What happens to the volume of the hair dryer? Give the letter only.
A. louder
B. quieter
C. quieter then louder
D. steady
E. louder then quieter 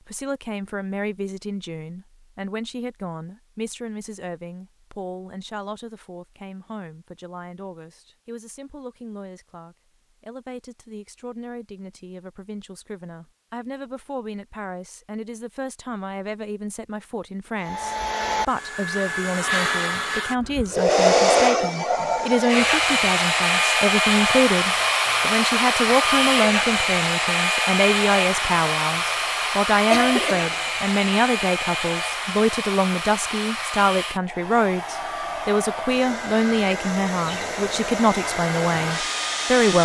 B.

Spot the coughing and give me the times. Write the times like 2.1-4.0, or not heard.
29.9-30.6.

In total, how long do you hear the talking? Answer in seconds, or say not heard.
40 s.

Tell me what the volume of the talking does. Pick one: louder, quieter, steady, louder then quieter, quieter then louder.
louder.